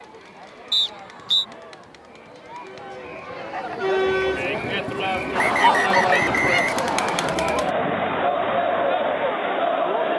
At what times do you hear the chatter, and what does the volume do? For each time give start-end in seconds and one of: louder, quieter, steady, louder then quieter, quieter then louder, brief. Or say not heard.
0.0-10.1 louder.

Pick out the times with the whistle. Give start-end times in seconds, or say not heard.
0.7-1.4, 5.3-7.3.